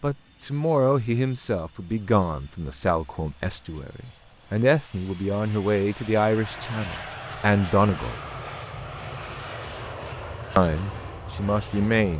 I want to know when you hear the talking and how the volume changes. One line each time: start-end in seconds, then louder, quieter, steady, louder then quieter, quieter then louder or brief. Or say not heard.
0.0-8.2 steady
10.6-12.1 brief.